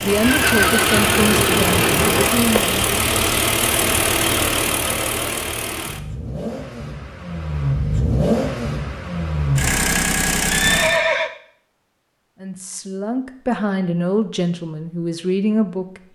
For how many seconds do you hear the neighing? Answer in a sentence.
The neighing can be heard for 3 seconds in total.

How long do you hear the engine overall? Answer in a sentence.
The engine can be heard for 11 seconds in total.